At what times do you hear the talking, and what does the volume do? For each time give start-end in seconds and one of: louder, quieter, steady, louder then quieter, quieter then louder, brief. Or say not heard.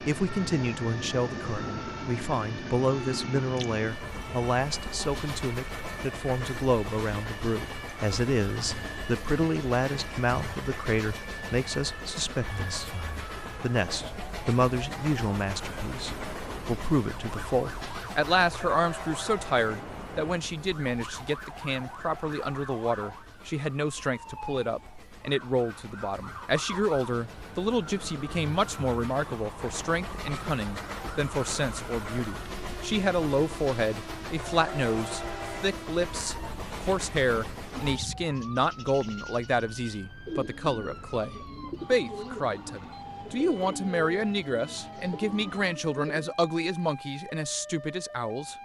0.0-48.5 steady.